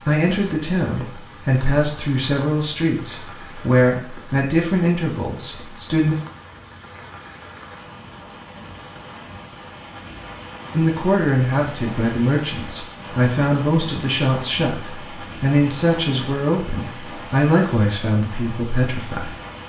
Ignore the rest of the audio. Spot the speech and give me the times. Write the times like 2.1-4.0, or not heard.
0.0-6.2, 10.7-19.4.